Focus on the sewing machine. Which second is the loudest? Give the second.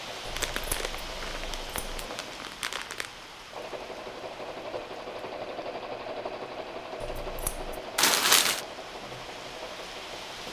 6 s.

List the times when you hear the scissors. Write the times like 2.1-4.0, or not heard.
0.2-2.1, 7.0-7.8.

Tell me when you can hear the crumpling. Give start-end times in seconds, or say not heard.
0.3-3.1, 8.0-8.7.